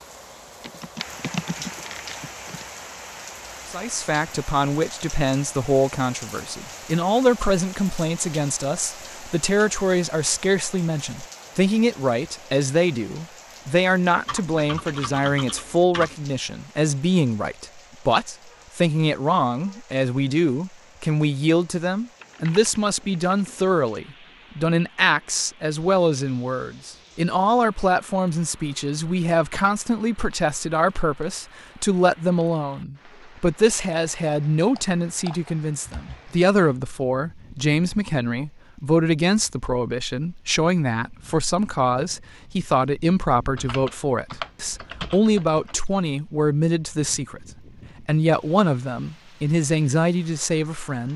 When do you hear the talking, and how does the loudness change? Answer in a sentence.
You can hear the talking from 3.6 to 51.1 s, at a steady volume.